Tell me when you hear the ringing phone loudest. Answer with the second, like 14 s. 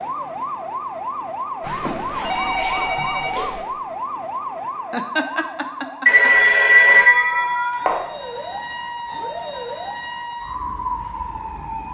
7 s.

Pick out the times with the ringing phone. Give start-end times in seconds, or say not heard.
1.6-3.6, 6.0-8.0.